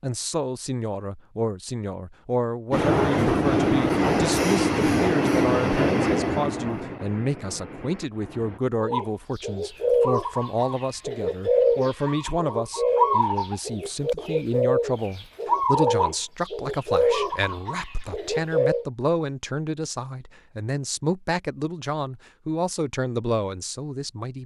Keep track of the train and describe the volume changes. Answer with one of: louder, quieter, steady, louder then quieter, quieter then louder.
quieter.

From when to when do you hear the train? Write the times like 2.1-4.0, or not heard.
2.7-8.6.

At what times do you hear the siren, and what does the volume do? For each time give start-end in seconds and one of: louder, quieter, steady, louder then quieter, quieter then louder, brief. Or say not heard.
not heard.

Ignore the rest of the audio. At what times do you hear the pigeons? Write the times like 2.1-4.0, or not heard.
8.8-18.9.